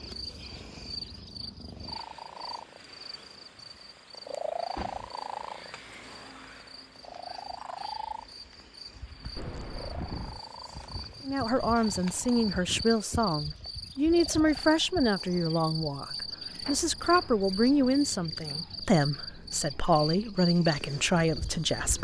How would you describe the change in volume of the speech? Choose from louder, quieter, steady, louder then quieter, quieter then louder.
steady.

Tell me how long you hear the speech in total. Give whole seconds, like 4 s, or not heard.
11 s.